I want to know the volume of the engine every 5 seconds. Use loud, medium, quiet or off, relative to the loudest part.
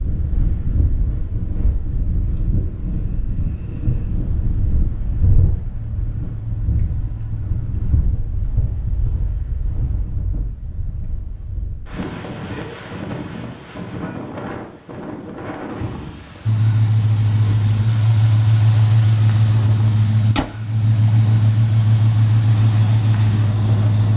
off, quiet, off, loud, loud.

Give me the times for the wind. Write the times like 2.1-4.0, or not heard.
0.0-24.1.